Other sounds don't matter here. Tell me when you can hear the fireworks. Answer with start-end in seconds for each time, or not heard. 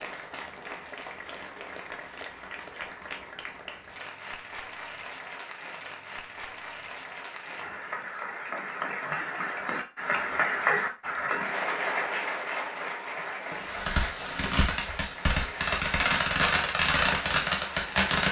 13.5-18.2.